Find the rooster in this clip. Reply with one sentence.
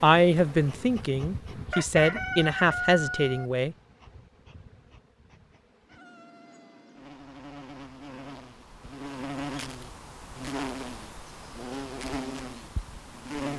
The rooster can be heard from 1.7 to 3.5 s.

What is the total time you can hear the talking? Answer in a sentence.
You can hear the talking for 4 seconds altogether.